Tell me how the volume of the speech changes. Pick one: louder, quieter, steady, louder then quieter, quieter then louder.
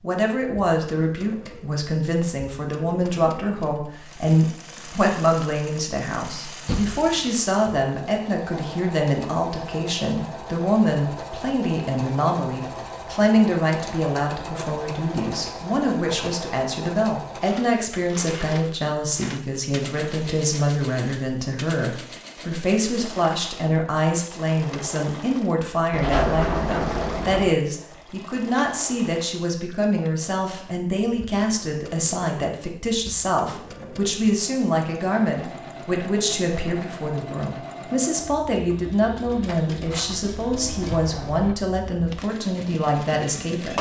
steady.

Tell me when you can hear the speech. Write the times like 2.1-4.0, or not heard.
0.0-43.7.